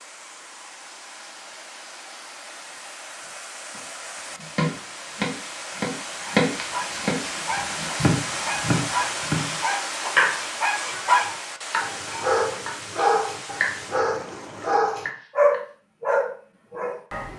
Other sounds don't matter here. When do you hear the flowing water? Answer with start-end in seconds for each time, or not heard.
0.0-14.8.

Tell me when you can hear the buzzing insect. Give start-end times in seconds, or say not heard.
not heard.